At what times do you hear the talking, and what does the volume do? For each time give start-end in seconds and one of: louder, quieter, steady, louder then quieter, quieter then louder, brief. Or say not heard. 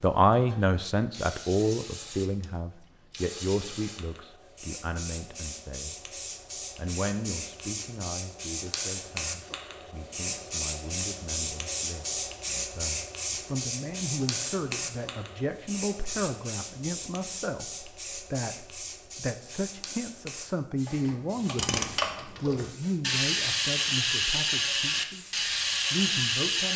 0.0-6.0 quieter
6.8-26.7 louder.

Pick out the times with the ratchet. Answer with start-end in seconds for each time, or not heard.
20.9-26.7.